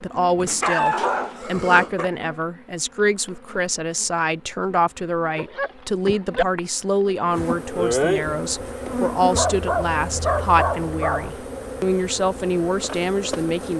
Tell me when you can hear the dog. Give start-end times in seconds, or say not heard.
0.5-2.1, 5.3-6.5, 9.3-11.3.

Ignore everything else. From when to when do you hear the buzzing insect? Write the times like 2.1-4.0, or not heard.
0.0-13.7.